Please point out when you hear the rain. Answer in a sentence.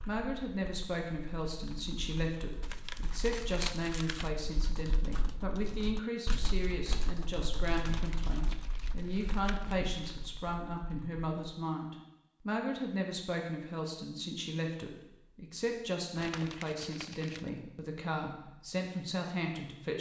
You can't hear the rain here.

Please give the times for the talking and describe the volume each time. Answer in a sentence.
The talking can be heard from 0.1 to 19.9 s, at a steady volume.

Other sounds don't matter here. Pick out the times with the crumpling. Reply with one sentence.
The crumpling can be heard from 2.6 to 4.3 s, from 7.9 to 10.3 s and from 16.1 to 17.5 s.